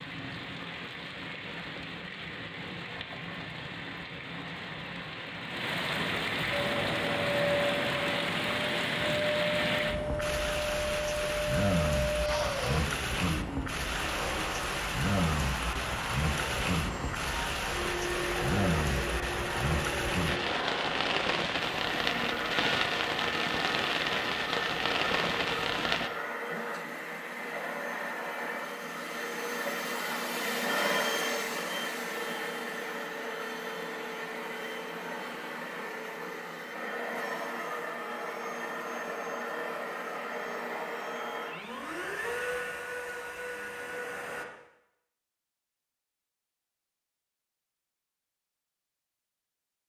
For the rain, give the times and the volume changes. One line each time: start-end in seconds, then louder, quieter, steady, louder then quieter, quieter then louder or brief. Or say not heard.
0.0-26.1 louder.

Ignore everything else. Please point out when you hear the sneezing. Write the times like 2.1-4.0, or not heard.
12.2-12.9, 26.4-27.0.